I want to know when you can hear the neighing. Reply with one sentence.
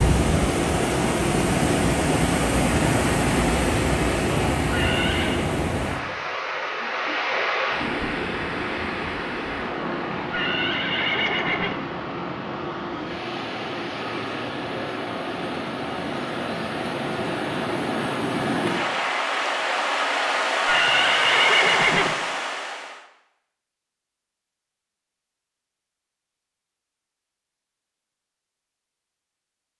You can hear the neighing from 4.7 to 5.5 s, from 10.3 to 11.8 s and from 20.6 to 22.1 s.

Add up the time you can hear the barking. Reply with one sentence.
The barking can't be heard in this clip.